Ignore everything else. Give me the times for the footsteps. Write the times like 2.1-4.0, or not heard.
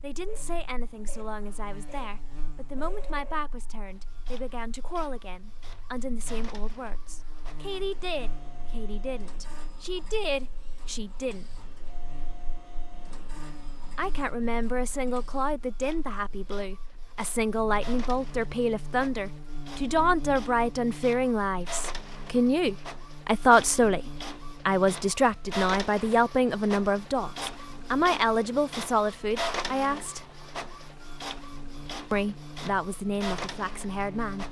not heard.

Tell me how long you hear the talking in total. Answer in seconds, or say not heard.
30 s.